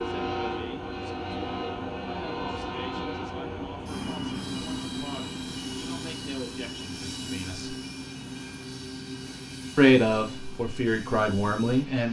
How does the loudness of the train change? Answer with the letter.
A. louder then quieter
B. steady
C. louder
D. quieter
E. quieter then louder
D.